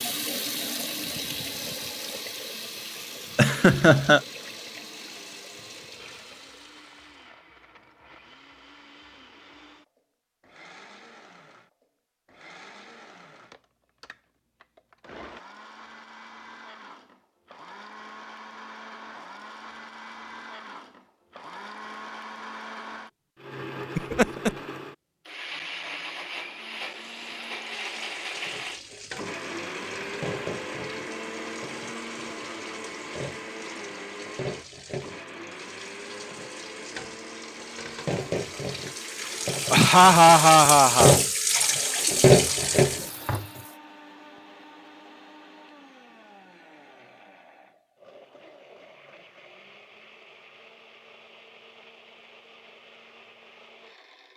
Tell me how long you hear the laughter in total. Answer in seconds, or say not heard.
3 s.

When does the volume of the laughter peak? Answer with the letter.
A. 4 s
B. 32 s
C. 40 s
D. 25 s
C.